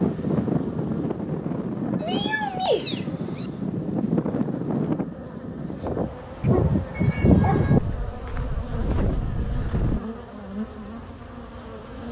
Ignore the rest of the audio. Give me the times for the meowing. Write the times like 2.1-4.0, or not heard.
2.0-3.5, 6.4-7.8.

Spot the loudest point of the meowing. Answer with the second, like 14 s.
7 s.